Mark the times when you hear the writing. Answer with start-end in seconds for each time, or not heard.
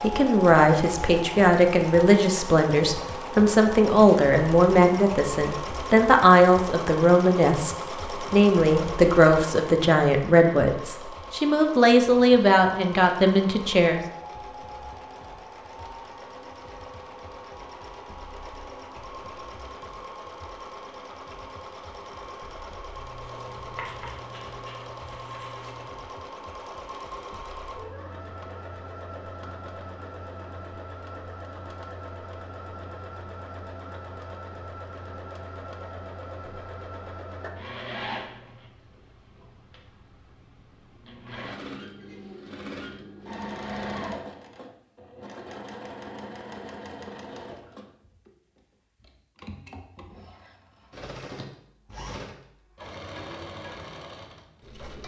22.9-25.9.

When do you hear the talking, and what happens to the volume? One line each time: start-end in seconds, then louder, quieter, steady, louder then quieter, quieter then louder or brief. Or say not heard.
0.0-14.0 steady.